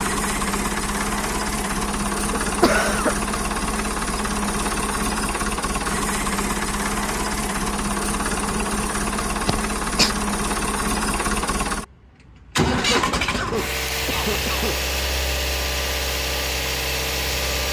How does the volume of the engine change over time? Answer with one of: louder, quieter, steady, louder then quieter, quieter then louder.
steady.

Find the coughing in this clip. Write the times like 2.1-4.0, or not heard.
2.3-3.1, 9.4-10.1, 12.7-14.9.